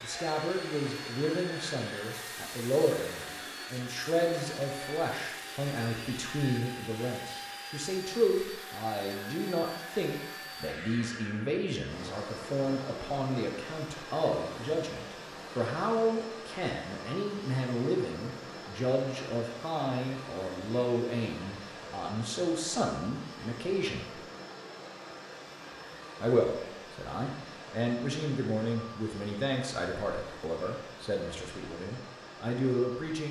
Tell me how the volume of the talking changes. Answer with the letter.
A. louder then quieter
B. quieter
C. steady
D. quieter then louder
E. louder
C.